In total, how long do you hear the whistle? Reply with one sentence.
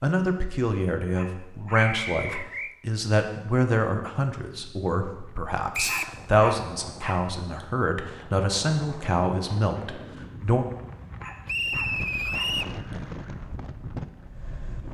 You can hear the whistle for 3 seconds altogether.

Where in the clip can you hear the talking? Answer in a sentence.
You can hear the talking from 0.0 to 10.7 s.